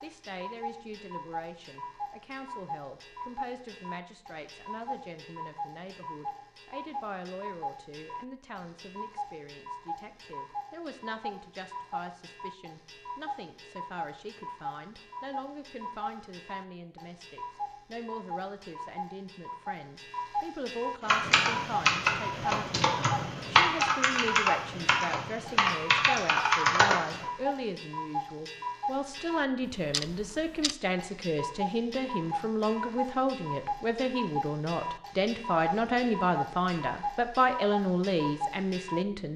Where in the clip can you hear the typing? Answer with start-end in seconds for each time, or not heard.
21.1-27.2.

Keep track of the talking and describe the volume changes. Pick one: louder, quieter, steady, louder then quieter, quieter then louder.
louder.